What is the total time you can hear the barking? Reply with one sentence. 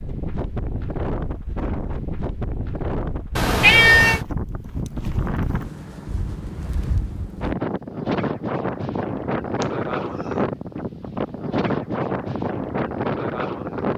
The barking can't be heard in this clip.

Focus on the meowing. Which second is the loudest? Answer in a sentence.
The volume of the meowing peaks at 4 seconds.